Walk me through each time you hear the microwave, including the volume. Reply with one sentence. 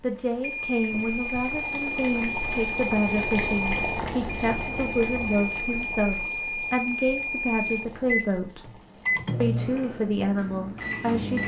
The microwave can be heard from 0.0 to 11.4 s, at a steady volume.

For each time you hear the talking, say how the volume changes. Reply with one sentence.
You can hear the talking from 0.0 to 8.7 s, at a steady volume; and briefly from 9.4 to 11.4 s.